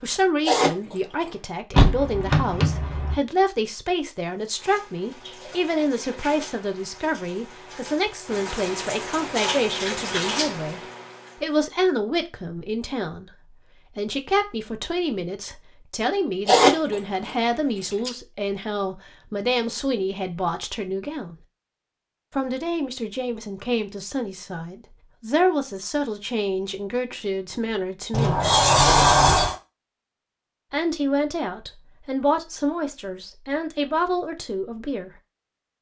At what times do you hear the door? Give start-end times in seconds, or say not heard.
1.7-3.1, 28.1-29.6.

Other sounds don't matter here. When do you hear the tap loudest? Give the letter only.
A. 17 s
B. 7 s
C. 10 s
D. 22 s
C.